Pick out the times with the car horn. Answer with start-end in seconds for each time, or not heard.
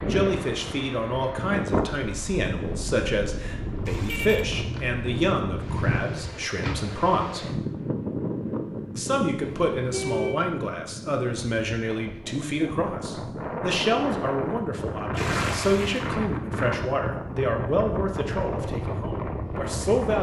3.9-4.5, 9.4-10.4, 15.2-16.1.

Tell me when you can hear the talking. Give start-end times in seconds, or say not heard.
0.0-7.5, 8.9-20.1.